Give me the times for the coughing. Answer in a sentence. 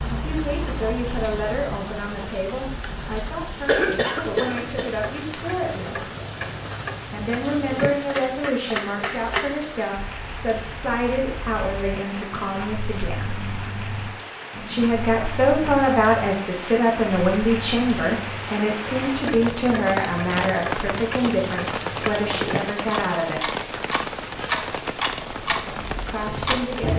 The coughing can be heard from 3.6 to 4.9 s.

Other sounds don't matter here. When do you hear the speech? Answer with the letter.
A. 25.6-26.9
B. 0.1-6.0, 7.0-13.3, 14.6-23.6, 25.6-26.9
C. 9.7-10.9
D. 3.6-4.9
B.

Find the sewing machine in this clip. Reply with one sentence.
You can't hear the sewing machine here.